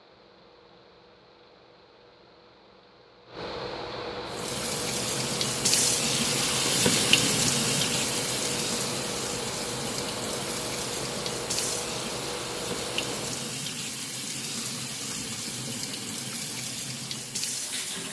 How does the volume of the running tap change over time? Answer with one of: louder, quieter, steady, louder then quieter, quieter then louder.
quieter.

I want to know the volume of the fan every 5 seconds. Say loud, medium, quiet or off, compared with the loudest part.
medium, loud, loud, off.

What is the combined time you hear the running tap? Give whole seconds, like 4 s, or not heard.
14 s.